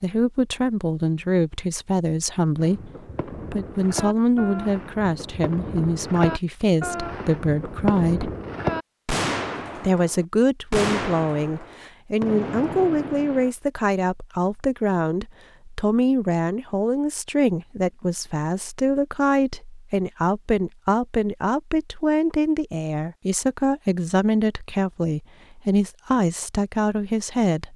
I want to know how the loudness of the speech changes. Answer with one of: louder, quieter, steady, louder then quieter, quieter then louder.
steady.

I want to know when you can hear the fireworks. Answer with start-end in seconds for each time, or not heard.
2.5-13.6.